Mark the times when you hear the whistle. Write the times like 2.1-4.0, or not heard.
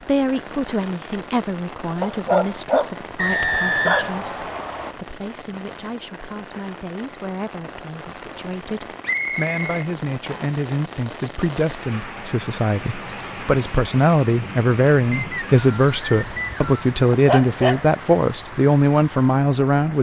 3.1-5.0, 9.0-10.6, 15.1-16.9.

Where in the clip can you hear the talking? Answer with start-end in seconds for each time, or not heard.
0.0-19.9.